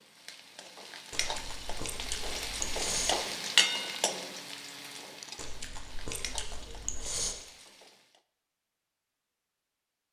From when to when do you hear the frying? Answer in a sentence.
The frying can be heard from 0.0 to 8.2 s.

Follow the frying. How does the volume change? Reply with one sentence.
The loudness of the frying goes up, then down.